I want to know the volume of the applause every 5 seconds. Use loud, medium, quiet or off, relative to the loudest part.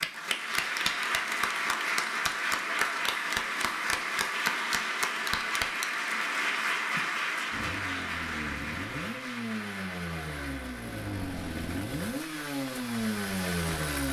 loud, loud, quiet.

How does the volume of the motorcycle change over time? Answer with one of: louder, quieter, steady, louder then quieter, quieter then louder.
louder.